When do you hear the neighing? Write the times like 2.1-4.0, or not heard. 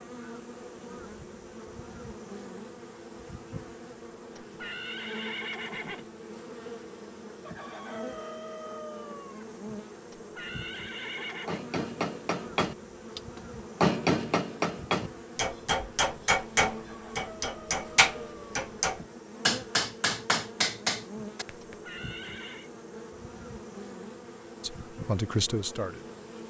4.3-6.0, 10.1-11.6, 21.6-22.7.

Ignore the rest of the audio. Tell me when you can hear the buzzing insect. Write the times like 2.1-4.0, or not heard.
0.0-26.4.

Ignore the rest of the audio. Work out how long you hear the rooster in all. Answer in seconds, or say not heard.
4 s.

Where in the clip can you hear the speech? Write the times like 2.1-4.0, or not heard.
24.6-26.1.